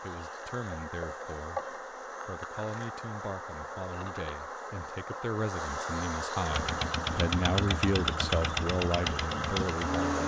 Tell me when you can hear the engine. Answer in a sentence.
You can hear the engine from 6.5 to 10.2 s.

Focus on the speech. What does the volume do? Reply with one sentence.
The volume of the speech goes up.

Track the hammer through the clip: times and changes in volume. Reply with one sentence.
You can't hear the hammer here.